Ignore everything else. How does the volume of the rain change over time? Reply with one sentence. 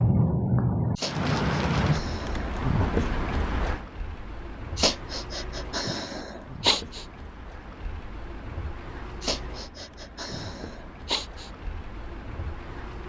The volume of the rain goes down.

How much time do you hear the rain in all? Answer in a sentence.
The rain can be heard for 13 seconds in total.